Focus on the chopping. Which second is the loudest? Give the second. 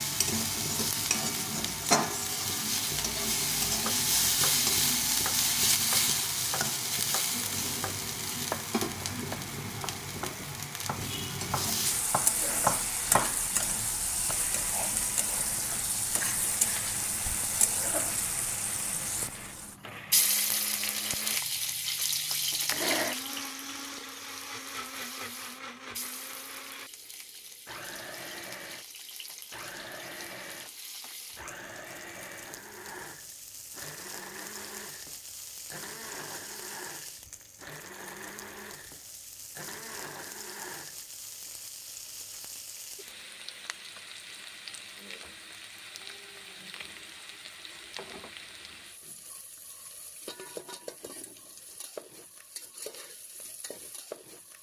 13 s.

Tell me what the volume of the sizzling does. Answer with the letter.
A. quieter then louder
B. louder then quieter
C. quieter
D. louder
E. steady
C.